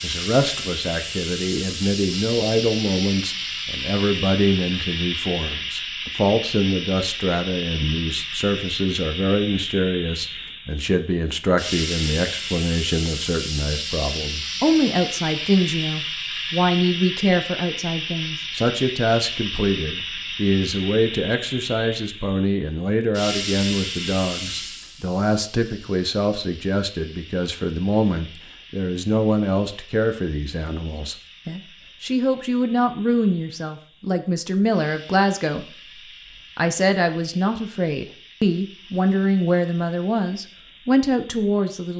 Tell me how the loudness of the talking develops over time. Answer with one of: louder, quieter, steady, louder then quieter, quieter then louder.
steady.